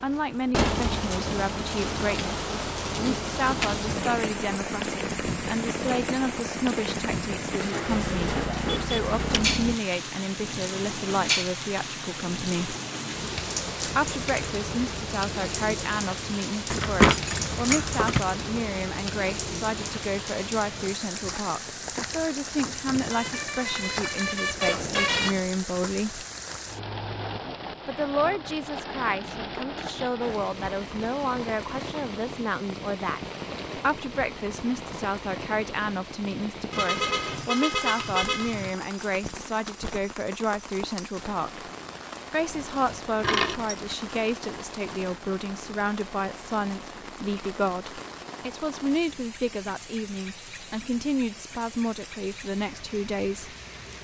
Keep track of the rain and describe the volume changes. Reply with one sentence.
The loudness of the rain goes down.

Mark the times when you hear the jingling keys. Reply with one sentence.
The jingling keys can be heard from 16.7 to 18.2 s and from 42.5 to 44.1 s.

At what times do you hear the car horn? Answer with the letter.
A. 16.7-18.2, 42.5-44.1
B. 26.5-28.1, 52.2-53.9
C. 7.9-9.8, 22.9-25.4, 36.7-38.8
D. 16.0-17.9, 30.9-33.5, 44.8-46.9
C.